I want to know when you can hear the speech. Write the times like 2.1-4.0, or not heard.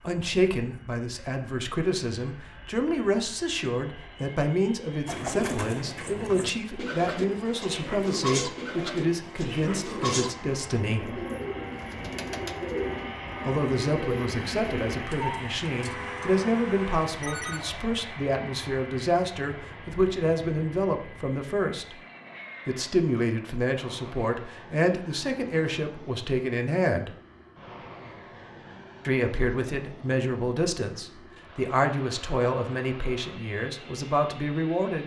0.0-11.2, 13.4-21.9, 22.6-27.1, 29.1-35.0.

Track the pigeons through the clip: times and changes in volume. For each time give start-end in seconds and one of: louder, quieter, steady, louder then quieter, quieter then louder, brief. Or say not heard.
5.0-15.1 steady.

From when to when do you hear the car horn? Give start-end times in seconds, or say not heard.
15.1-17.7.